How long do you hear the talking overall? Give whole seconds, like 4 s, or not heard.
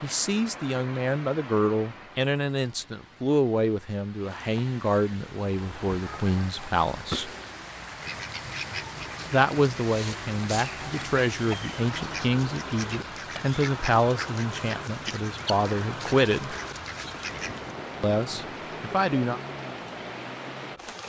16 s.